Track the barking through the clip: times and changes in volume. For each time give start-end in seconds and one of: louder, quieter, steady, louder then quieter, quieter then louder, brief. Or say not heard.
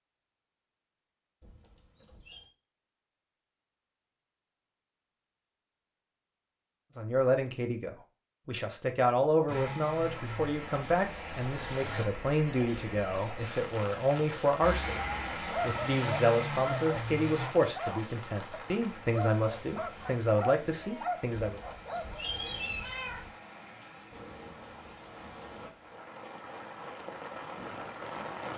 15.3-22.2 steady.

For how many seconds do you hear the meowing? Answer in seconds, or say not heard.
3 s.